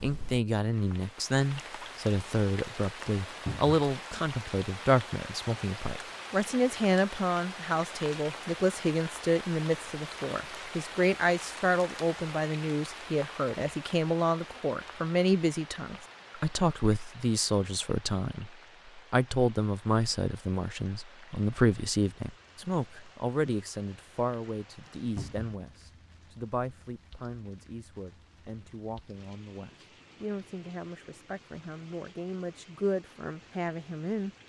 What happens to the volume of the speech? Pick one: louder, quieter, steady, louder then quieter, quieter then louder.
quieter.